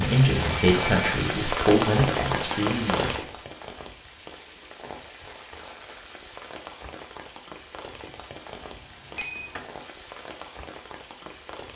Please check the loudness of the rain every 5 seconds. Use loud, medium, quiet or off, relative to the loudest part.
loud, quiet, quiet.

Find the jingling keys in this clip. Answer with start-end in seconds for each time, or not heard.
8.6-9.7.